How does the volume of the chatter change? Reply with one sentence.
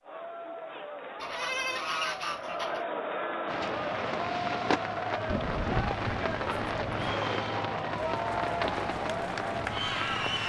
The volume of the chatter goes up.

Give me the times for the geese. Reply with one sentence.
You can hear the geese from 1.2 to 2.8 s and from 5.2 to 7.2 s.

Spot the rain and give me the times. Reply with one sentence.
The rain can be heard from 3.5 to 10.4 s.